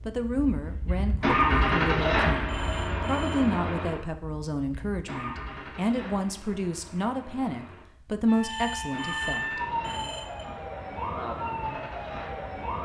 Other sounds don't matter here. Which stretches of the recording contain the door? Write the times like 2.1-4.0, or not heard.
not heard.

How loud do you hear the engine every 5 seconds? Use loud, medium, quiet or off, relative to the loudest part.
loud, quiet, quiet.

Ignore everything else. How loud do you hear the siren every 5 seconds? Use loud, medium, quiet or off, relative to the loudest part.
off, loud, loud.